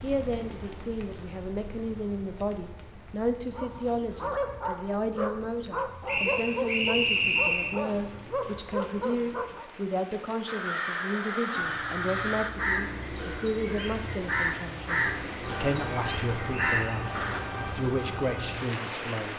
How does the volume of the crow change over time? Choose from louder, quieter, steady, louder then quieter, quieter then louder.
steady.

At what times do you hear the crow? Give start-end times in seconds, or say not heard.
10.4-17.4.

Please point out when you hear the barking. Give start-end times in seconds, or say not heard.
3.5-9.7.